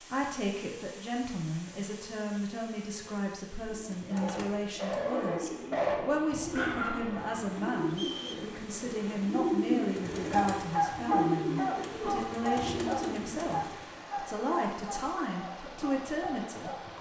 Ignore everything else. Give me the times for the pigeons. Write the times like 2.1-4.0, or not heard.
3.6-13.9.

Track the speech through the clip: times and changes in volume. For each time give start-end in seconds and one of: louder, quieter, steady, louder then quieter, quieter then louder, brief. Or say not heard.
0.0-16.9 steady.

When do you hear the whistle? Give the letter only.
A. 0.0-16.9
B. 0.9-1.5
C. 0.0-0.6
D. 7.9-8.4
D.